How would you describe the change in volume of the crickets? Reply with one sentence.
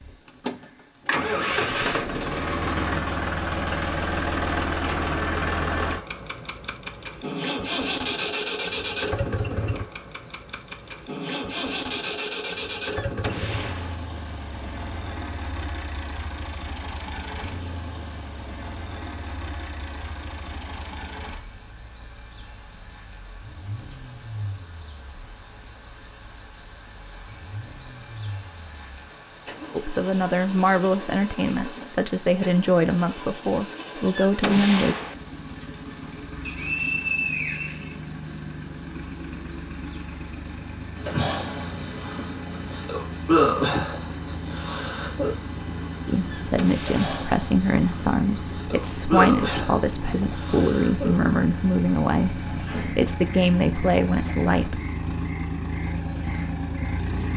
The volume of the crickets goes up, then down.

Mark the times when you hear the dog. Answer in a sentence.
You can't hear the dog here.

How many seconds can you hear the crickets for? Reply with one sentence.
You can hear the crickets for 57 seconds altogether.